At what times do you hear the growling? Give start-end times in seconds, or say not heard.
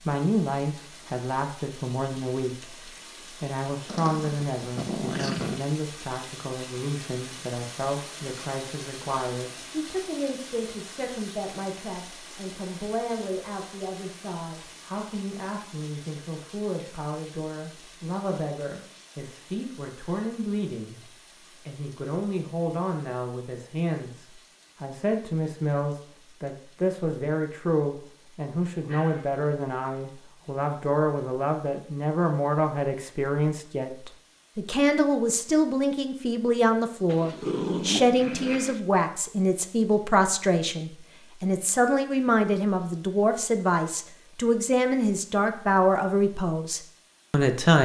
3.9-5.6, 28.8-29.4, 37.0-38.8.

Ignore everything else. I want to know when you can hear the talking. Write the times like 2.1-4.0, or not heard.
0.1-21.0, 21.6-47.7.